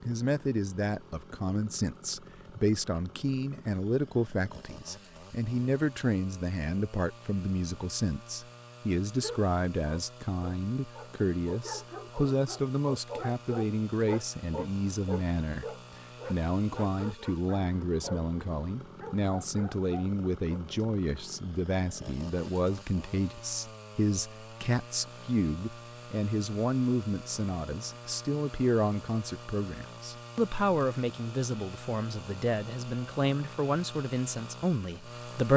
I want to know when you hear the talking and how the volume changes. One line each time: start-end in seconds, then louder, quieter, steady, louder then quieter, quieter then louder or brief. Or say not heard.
0.0-35.5 steady.